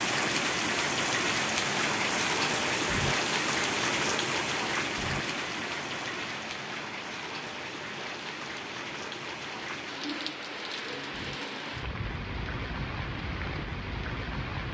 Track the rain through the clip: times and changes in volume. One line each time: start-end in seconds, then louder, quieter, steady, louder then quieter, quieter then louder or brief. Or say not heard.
0.0-14.6 quieter.